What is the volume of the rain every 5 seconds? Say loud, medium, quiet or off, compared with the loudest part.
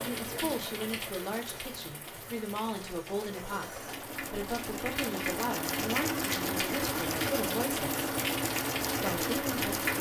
medium, loud.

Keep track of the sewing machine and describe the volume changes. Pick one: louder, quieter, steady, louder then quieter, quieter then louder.
louder.